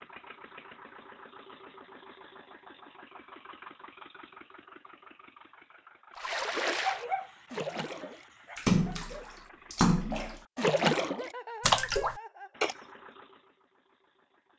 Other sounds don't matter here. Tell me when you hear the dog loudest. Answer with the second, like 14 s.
7 s.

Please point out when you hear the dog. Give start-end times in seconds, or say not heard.
6.8-9.2.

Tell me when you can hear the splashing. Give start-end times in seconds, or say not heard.
6.2-12.8.